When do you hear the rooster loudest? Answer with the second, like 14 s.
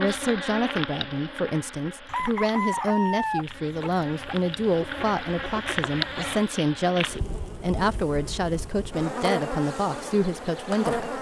3 s.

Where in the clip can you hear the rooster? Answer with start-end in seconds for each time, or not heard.
2.0-6.5.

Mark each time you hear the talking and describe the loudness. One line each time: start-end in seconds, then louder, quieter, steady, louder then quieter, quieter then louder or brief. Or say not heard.
0.0-11.1 steady.